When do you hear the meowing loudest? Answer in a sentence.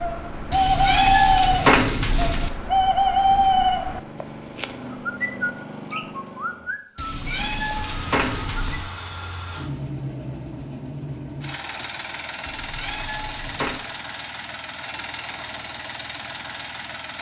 The loudest moment of the meowing is at 2 seconds.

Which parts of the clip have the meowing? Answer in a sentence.
You can hear the meowing from 0.5 to 2.5 s, from 7.0 to 8.8 s and from 12.4 to 13.8 s.